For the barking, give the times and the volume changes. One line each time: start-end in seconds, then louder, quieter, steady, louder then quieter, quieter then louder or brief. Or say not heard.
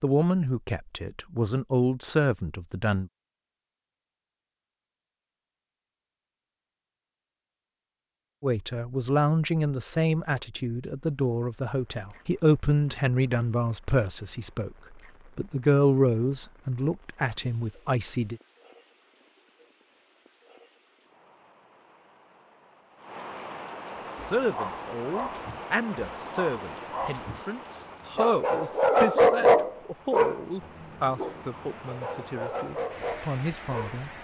24.4-34.1 louder then quieter.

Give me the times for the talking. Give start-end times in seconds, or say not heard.
0.0-3.1, 8.4-14.7, 15.3-18.4, 24.1-34.1.